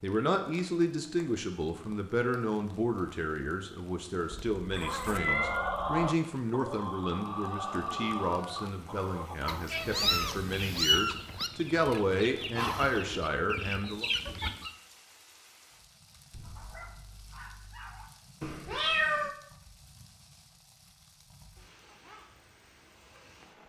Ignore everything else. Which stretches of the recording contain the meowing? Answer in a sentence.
The meowing can be heard from 4.3 to 6.0 s, from 9.4 to 11.5 s and from 18.4 to 19.4 s.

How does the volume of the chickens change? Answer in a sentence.
The volume of the chickens goes down, then up.